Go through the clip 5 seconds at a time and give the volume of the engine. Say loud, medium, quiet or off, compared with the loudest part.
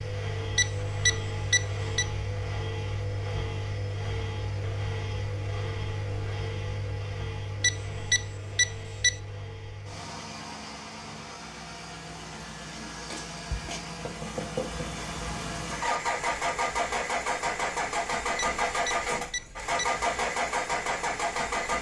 medium, medium, medium, loud, loud.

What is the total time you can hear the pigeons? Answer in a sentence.
You can't hear the pigeons here.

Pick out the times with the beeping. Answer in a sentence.
The beeping can be heard from 0.6 to 2.0 s, from 7.6 to 9.1 s and from 18.4 to 19.9 s.